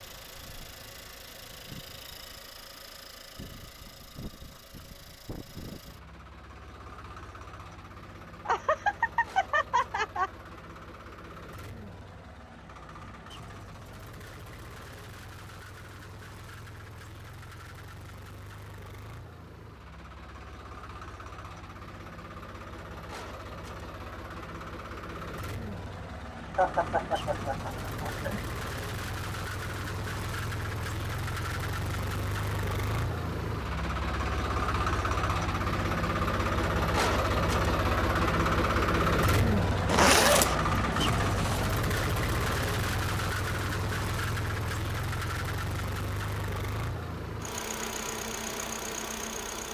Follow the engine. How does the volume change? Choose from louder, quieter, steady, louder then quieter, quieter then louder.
louder.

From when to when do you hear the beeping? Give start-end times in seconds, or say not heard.
not heard.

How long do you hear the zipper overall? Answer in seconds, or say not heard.
2 s.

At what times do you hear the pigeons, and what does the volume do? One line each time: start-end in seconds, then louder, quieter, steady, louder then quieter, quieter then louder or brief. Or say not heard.
not heard.